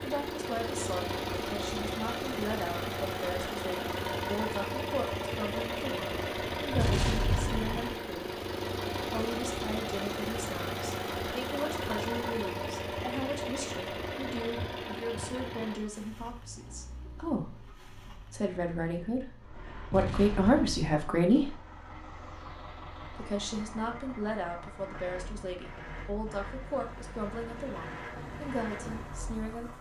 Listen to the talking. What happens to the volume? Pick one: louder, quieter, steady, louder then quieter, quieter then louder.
louder then quieter.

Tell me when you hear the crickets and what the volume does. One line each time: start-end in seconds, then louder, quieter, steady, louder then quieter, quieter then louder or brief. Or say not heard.
not heard.